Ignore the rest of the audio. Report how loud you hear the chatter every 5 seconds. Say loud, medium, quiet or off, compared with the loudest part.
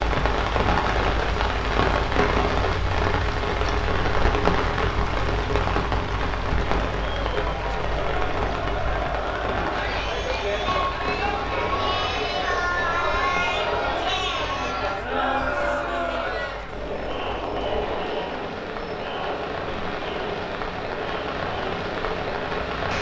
off, medium, loud, loud, medium.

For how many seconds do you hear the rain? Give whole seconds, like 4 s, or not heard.
23 s.